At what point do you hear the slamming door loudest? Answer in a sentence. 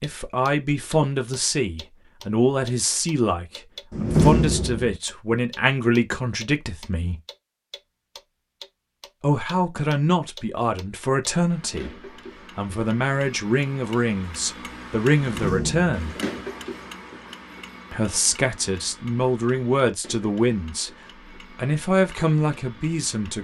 The volume of the slamming door peaks at 4 seconds.